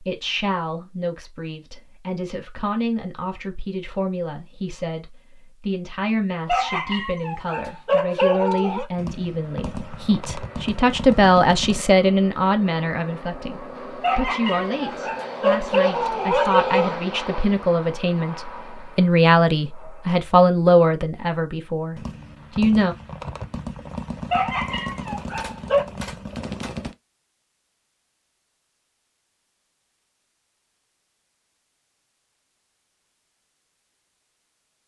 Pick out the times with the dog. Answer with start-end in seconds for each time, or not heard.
6.5-8.8, 14.0-16.9, 24.3-25.9.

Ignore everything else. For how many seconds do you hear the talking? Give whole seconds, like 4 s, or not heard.
23 s.